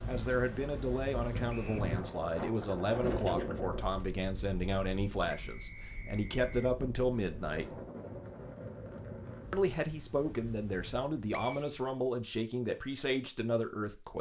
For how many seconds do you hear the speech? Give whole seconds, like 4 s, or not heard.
12 s.